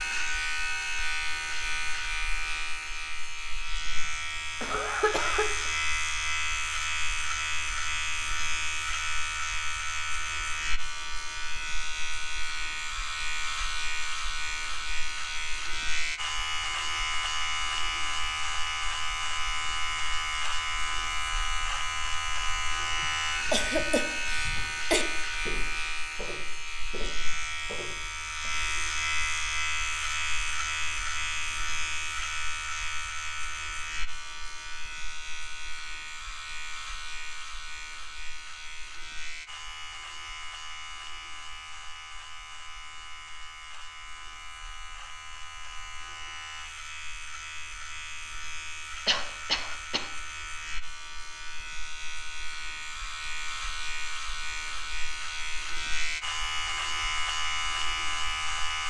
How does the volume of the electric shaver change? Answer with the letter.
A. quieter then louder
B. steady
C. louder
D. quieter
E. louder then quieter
A.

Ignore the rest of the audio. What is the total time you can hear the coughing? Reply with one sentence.
You can hear the coughing for 4 seconds altogether.